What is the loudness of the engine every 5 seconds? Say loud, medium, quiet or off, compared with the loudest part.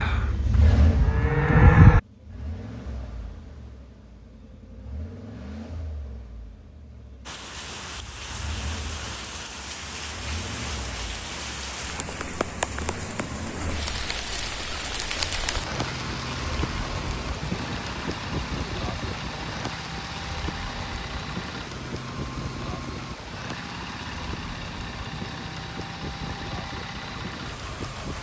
loud, medium, medium, loud, loud, loud.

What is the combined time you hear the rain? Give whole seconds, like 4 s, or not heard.
21 s.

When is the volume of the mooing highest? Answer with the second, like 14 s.
2 s.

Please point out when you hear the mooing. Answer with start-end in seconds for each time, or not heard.
0.0-2.0.